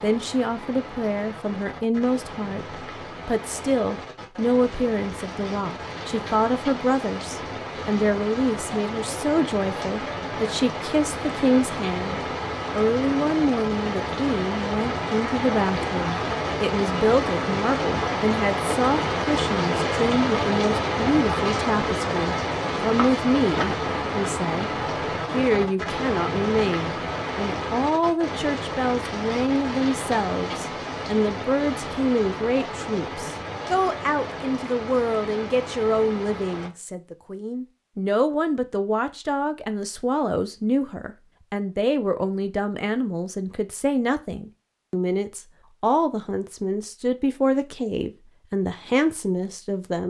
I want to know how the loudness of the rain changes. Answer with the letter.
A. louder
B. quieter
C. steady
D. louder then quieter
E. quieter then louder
D.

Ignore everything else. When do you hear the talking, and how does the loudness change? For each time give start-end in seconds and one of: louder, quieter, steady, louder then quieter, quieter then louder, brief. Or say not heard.
0.0-24.7 steady
25.3-50.0 steady.